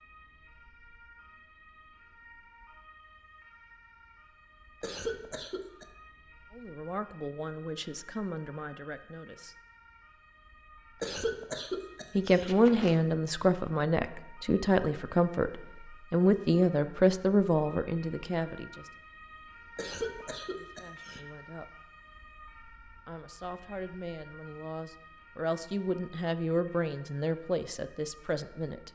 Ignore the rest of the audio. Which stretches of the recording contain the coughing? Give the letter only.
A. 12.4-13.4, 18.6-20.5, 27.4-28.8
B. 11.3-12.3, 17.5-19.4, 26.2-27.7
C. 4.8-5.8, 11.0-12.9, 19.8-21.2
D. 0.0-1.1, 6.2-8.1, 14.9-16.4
C.